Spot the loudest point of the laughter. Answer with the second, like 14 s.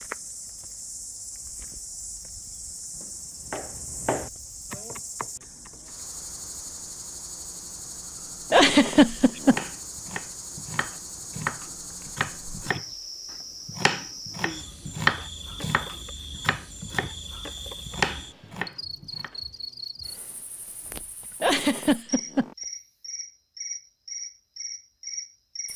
9 s.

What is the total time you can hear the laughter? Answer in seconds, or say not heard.
2 s.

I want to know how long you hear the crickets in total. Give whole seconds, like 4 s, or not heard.
26 s.